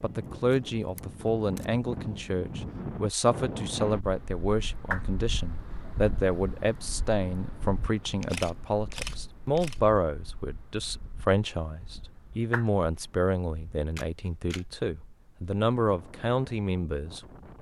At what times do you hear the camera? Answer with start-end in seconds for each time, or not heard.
0.5-1.6, 8.2-9.8, 13.9-14.7.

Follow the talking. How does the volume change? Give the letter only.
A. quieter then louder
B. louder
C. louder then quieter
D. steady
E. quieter
D.